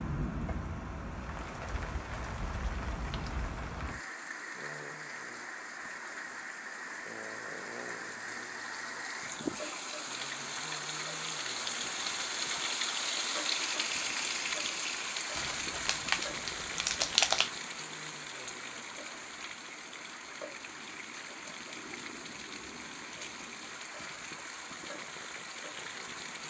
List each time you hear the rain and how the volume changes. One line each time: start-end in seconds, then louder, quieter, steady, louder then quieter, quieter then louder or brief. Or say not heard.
0.0-26.4 louder then quieter.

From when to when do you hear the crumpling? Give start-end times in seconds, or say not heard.
15.3-17.5.